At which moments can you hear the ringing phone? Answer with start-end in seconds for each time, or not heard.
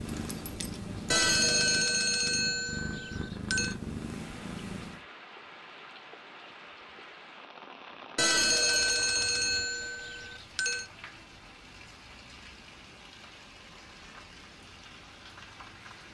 1.1-3.8, 8.2-10.8.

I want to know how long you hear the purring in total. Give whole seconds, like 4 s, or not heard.
5 s.